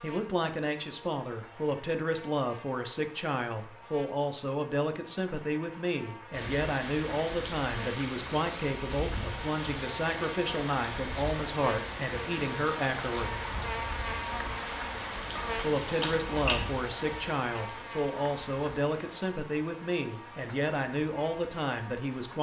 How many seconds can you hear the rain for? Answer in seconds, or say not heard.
16 s.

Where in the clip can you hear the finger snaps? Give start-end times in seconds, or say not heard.
15.4-16.7.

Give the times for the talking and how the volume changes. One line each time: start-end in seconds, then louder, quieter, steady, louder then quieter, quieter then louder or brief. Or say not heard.
0.0-13.3 steady
15.6-22.3 steady.